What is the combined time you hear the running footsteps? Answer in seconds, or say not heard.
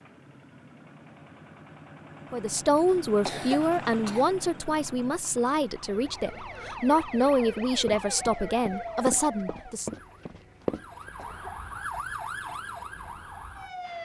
4 s.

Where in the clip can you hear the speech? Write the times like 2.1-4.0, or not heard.
2.3-9.9.